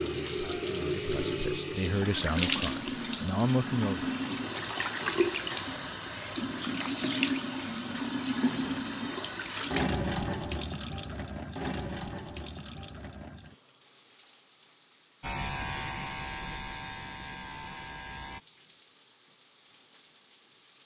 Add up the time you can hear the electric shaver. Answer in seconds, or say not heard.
3 s.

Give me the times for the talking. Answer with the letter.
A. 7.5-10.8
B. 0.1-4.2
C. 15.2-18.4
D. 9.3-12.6
B.